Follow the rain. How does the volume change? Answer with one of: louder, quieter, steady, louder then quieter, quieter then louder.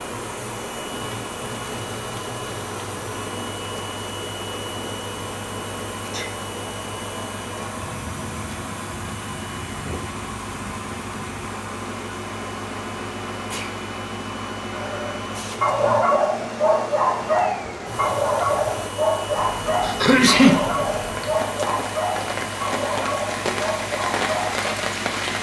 louder.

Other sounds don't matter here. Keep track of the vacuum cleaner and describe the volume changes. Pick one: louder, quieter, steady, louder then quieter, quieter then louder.
steady.